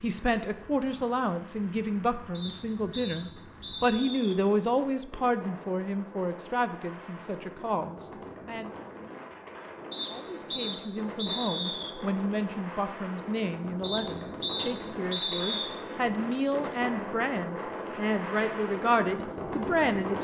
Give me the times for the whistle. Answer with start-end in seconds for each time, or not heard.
2.3-4.3, 9.9-11.9, 13.8-15.7.